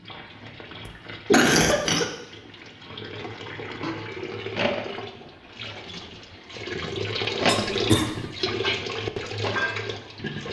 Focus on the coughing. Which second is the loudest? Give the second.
1 s.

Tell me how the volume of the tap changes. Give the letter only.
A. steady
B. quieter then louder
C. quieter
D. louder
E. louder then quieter
D.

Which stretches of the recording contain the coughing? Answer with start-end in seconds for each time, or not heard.
0.8-2.0, 7.5-8.2.